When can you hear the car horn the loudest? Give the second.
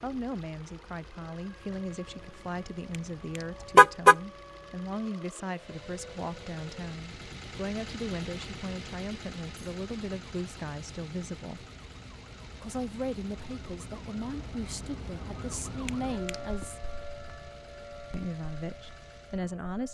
4 s.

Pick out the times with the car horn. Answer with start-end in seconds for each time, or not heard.
3.8-4.2, 15.8-16.5.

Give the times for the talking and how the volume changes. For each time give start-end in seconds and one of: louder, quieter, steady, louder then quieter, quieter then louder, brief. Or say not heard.
0.0-11.7 steady
12.6-16.9 quieter then louder
18.1-19.8 brief.